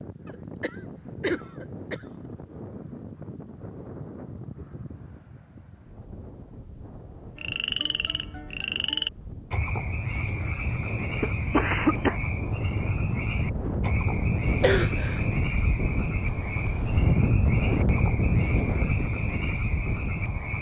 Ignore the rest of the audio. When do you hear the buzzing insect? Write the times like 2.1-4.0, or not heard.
not heard.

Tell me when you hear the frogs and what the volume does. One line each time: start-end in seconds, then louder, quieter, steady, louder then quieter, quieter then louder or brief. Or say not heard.
7.3-20.5 steady.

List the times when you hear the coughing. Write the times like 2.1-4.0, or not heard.
0.2-2.0, 11.2-12.2, 14.6-15.2.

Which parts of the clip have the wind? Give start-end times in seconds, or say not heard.
0.0-20.5.